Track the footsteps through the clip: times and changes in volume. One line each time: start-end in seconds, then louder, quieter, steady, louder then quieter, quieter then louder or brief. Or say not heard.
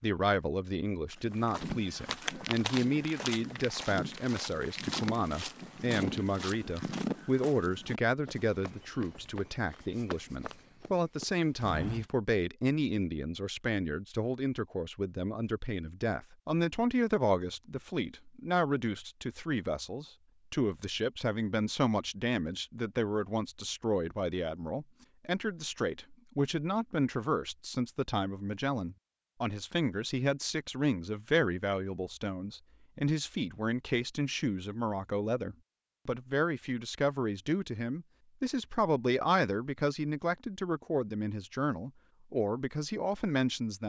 1.1-12.1 quieter.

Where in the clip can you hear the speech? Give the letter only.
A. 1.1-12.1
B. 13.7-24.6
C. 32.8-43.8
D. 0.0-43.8
D.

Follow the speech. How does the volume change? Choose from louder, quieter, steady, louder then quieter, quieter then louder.
steady.